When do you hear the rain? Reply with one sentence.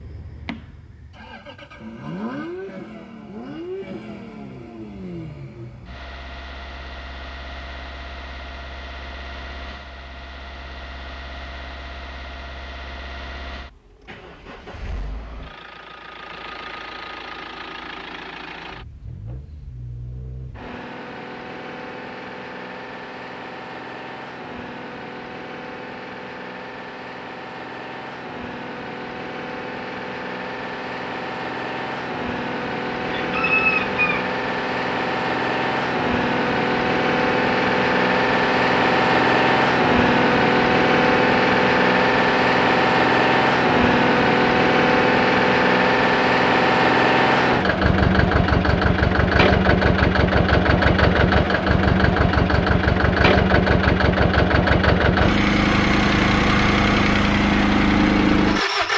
You can't hear the rain here.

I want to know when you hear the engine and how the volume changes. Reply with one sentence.
The engine can be heard from 0.0 to 58.9 s, getting louder.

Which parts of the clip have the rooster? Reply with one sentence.
The rooster can be heard from 33.1 to 34.3 s.